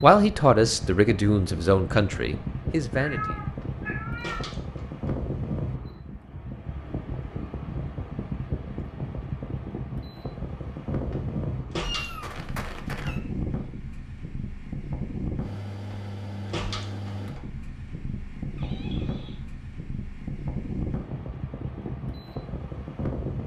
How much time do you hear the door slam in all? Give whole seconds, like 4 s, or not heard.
4 s.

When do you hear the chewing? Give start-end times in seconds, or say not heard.
not heard.